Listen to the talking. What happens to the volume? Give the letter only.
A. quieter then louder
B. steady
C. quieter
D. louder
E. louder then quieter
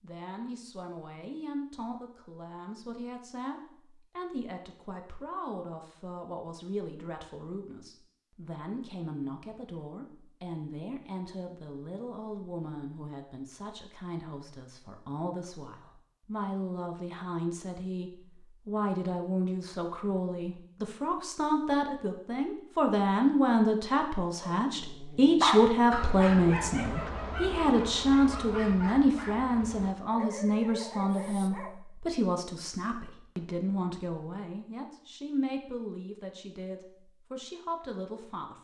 E.